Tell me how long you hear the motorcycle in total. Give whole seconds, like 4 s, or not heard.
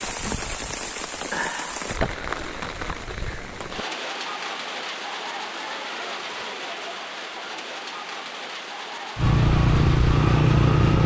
2 s.